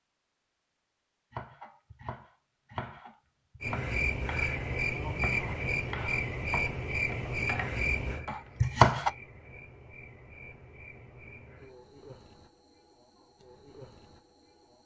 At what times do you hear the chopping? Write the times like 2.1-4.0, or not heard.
1.3-9.1.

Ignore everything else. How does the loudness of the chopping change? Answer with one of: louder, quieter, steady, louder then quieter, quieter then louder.
louder.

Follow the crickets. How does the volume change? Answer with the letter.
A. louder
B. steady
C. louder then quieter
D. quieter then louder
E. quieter
E.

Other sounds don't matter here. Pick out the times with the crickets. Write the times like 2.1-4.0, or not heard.
3.6-14.8.